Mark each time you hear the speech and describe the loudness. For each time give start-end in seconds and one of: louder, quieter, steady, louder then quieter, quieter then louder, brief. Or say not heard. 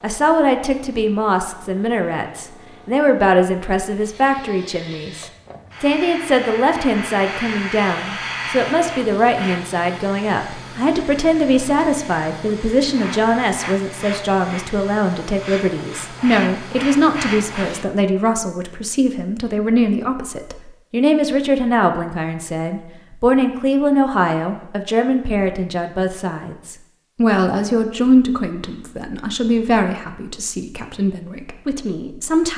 0.0-32.5 steady.